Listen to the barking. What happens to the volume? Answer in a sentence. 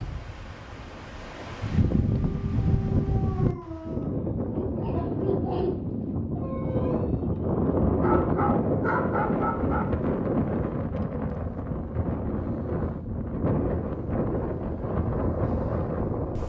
The loudness of the barking goes up.